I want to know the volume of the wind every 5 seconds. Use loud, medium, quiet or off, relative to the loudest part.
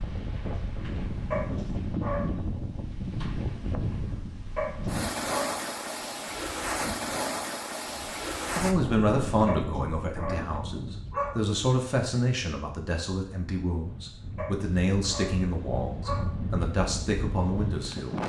loud, loud, medium, loud.